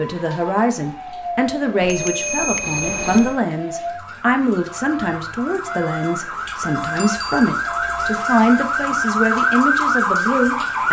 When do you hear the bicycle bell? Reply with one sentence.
You can hear the bicycle bell from 1.8 to 3.4 s and from 7.0 to 7.5 s.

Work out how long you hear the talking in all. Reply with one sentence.
The talking can be heard for 11 seconds in total.